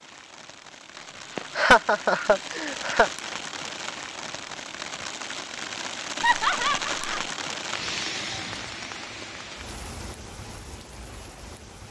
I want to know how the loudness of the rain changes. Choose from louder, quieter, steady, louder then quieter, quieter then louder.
louder then quieter.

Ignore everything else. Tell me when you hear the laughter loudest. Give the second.
2 s.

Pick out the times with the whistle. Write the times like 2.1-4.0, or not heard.
not heard.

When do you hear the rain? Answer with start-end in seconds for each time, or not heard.
0.0-11.8.